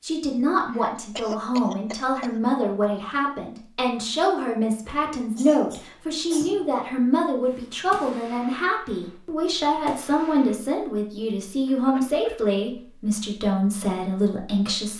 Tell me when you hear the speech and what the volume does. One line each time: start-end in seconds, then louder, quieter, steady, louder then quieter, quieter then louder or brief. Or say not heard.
0.0-14.9 steady.